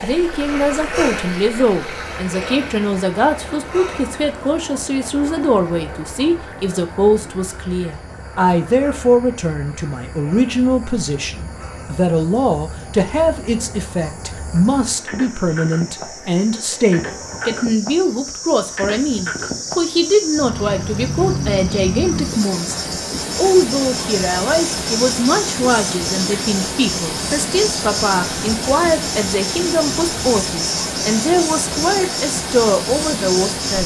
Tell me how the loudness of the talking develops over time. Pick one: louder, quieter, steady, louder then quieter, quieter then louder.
steady.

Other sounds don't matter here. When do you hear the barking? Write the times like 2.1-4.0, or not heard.
not heard.